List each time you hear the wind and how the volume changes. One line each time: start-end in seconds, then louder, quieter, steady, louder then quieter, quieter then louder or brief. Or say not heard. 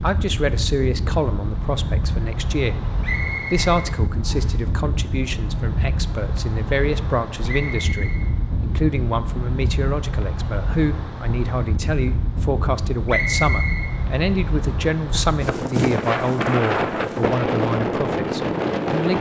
0.0-19.1 louder.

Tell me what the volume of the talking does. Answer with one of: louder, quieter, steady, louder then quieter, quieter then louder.
steady.